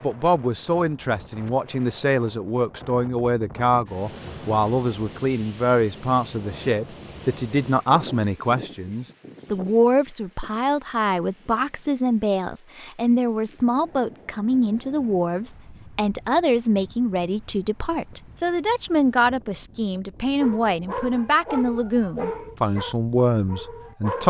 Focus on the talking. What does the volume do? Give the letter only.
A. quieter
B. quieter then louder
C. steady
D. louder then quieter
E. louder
C.